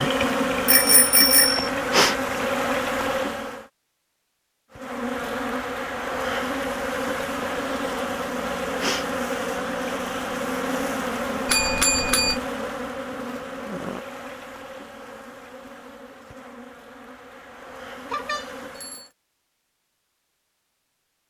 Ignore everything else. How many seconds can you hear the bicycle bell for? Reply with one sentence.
The bicycle bell can be heard for 3 seconds in total.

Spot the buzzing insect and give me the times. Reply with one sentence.
You can hear the buzzing insect from 0.0 to 3.6 s and from 4.7 to 19.1 s.